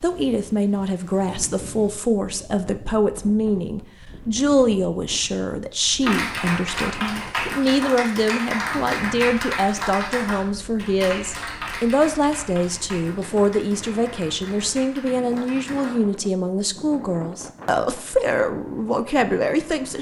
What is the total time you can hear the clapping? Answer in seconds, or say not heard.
10 s.